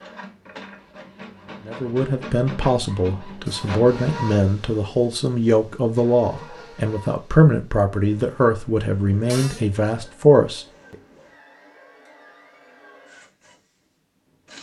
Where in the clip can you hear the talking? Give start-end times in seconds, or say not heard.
1.6-10.9.